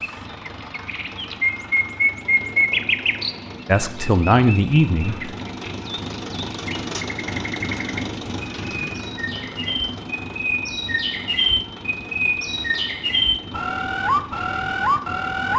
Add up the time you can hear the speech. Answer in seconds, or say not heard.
2 s.